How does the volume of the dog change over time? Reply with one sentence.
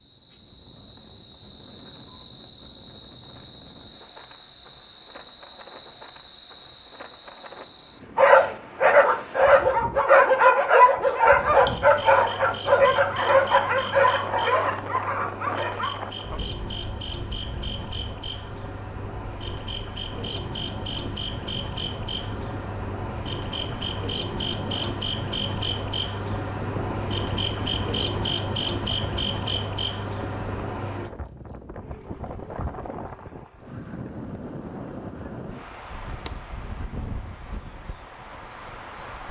The loudness of the dog goes down.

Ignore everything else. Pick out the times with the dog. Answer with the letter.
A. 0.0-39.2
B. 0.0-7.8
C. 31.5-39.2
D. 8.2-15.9
D.